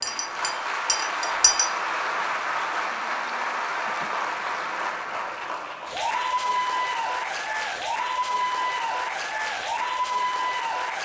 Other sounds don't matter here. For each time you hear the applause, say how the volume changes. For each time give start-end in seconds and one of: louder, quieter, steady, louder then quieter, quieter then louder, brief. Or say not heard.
0.0-11.0 steady.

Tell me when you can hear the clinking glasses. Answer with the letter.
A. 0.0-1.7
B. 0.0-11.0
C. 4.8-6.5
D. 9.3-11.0
A.